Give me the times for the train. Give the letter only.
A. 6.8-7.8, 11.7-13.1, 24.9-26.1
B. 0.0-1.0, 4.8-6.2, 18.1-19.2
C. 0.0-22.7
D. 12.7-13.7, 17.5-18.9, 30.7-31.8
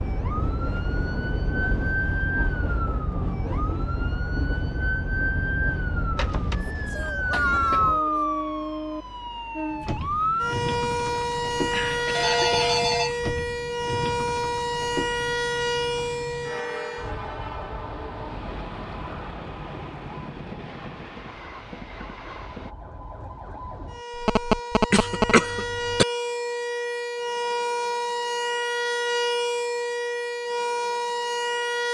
C.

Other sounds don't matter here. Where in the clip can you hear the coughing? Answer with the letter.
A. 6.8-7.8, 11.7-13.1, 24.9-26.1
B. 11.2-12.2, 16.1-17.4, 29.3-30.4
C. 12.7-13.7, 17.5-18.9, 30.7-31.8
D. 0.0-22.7
A.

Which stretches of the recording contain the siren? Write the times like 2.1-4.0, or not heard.
0.0-31.8.